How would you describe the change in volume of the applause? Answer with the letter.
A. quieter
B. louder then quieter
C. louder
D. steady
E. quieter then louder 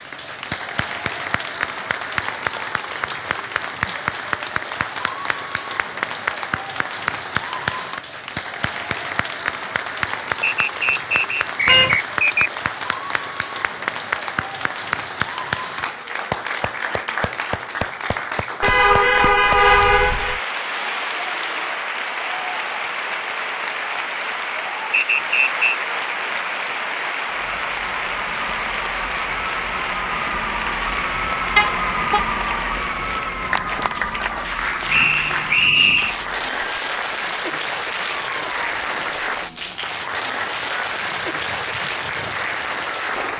D.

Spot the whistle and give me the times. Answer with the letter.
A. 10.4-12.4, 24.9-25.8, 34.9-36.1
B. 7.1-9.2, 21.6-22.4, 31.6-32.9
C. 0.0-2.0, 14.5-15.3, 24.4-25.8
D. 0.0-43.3
A.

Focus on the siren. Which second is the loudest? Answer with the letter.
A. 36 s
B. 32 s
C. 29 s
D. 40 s
B.